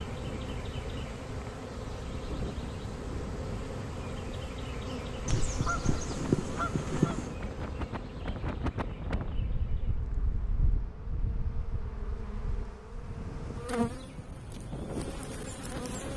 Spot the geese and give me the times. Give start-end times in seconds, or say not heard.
5.2-7.3.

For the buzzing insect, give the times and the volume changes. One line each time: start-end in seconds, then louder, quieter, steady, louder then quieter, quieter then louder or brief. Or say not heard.
0.0-16.1 quieter then louder.